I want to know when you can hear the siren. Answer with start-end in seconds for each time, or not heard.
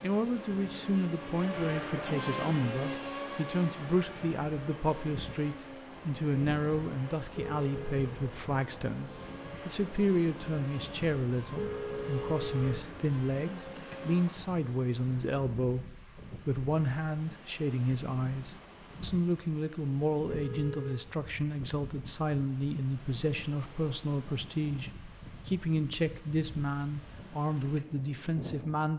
not heard.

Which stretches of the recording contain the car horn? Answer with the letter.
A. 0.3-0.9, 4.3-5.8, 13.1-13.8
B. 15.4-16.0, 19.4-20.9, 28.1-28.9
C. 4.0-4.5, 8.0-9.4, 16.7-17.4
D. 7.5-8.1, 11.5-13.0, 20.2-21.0
D.